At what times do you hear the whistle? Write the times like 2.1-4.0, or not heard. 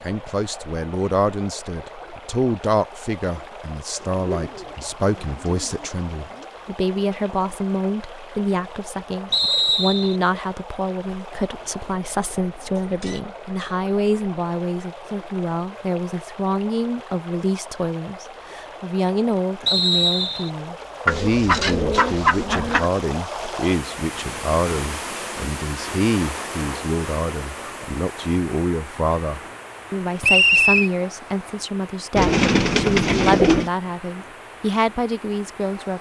9.3-10.2, 19.6-20.5, 30.2-30.9.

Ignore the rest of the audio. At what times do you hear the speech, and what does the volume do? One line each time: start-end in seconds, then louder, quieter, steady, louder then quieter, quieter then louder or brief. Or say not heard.
0.0-35.9 steady.